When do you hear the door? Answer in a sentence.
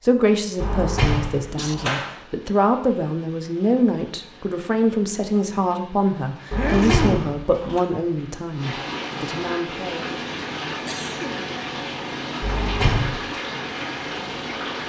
You can hear the door from 0.6 to 2.1 s, from 6.5 to 7.8 s and from 12.4 to 13.1 s.